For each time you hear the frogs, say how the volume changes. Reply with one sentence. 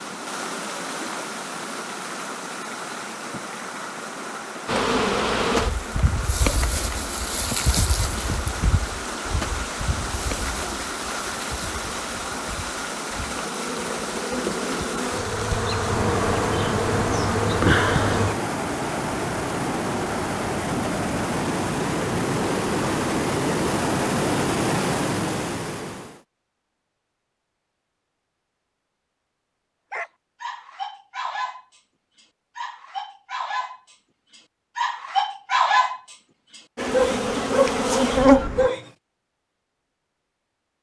The frogs can't be heard in this clip.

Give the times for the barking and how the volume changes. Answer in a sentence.
You can hear the barking from 29.9 to 38.9 s, getting louder.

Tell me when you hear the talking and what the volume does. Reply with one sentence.
You can't hear the talking here.